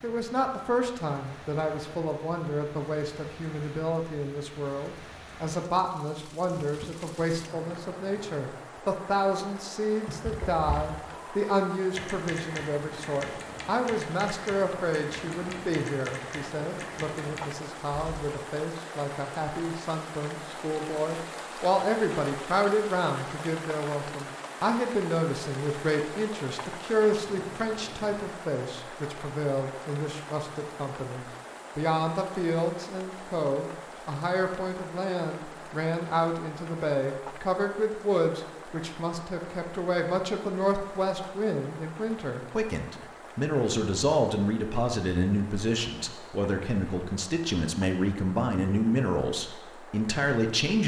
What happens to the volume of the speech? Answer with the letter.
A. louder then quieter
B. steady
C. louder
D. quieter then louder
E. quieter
B.